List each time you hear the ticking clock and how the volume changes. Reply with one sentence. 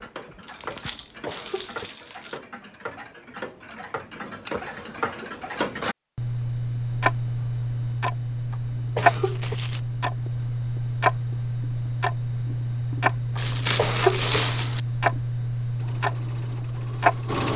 The ticking clock can be heard from 0.0 to 17.5 s, getting louder.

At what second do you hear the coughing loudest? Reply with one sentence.
The loudest moment of the coughing is at 14 seconds.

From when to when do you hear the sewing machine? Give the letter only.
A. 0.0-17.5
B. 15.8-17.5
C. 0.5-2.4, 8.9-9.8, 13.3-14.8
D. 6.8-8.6
B.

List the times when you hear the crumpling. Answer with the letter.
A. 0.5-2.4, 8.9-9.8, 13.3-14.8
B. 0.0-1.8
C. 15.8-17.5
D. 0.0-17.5
A.